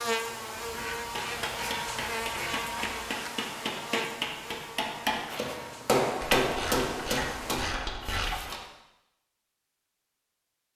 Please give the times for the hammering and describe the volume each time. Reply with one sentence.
The hammering can be heard from 1.1 to 8.7 s, getting louder then quieter.